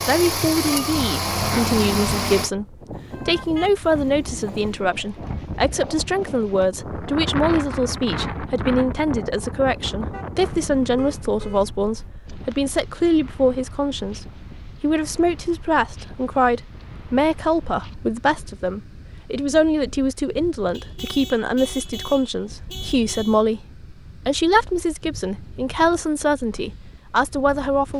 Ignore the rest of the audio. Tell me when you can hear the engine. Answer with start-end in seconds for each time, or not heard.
0.0-2.5.